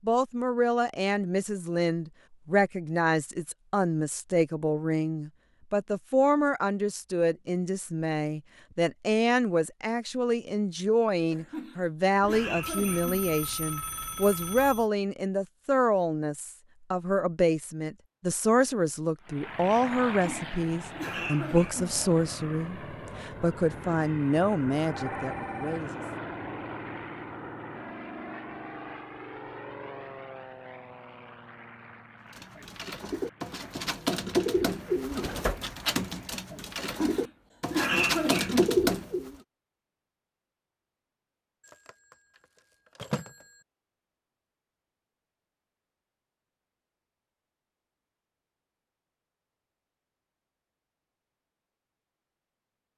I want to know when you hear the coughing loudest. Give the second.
38 s.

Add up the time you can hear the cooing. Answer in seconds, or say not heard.
7 s.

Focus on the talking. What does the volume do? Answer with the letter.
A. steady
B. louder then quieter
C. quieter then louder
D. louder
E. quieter
A.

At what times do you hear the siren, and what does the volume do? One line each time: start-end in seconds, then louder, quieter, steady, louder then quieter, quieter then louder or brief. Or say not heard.
not heard.